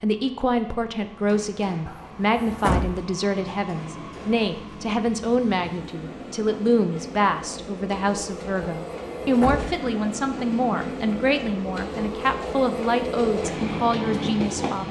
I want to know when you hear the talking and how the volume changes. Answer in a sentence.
The talking can be heard from 0.0 to 14.8 s, at a steady volume.